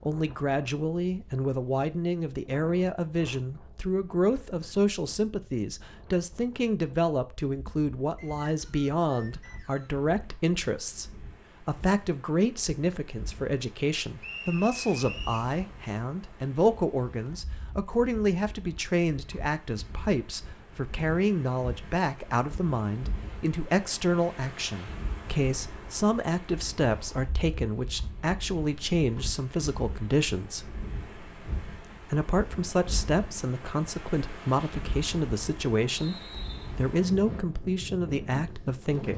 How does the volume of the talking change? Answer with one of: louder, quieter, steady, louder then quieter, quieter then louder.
steady.